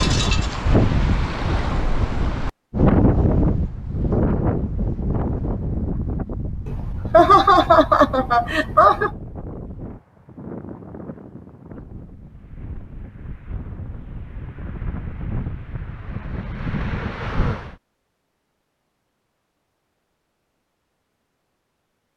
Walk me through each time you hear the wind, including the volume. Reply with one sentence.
The wind can be heard from 0.0 to 17.8 s, getting quieter then louder.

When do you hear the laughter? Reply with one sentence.
You can hear the laughter from 6.7 to 9.1 s.